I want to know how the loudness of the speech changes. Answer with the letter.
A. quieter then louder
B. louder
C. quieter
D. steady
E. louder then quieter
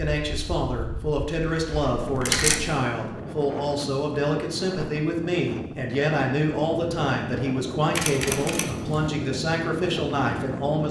D.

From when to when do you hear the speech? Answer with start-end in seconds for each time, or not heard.
0.0-10.8.